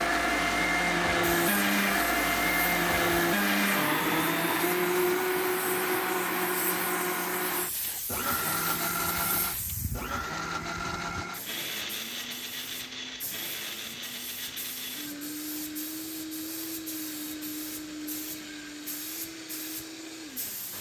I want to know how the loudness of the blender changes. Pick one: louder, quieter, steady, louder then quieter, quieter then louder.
quieter.